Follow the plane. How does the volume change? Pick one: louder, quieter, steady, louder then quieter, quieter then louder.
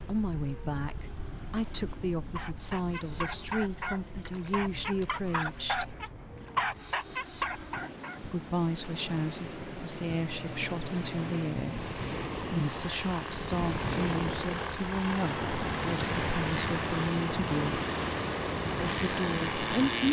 louder.